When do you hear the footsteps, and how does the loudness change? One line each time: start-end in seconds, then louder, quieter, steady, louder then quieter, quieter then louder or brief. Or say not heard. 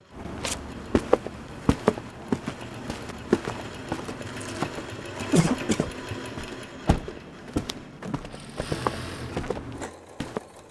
0.1-10.4 quieter then louder.